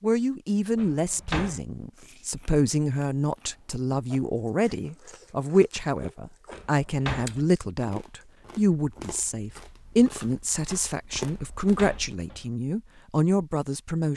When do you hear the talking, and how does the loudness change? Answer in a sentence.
The talking can be heard from 0.0 to 14.1 s, at a steady volume.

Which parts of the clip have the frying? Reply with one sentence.
The frying can't be heard in this clip.